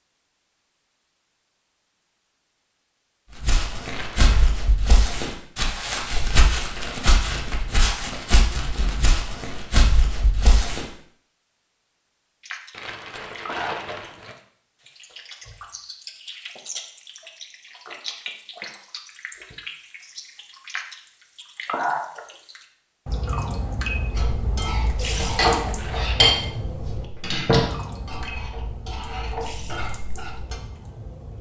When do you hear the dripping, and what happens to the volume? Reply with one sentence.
You can hear the dripping from 12.4 to 31.3 s, getting louder then quieter.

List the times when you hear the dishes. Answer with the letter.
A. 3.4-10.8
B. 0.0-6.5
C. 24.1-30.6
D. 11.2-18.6
C.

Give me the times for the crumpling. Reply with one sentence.
The crumpling can be heard from 3.9 to 4.5 s, from 12.7 to 14.3 s and from 25.0 to 26.1 s.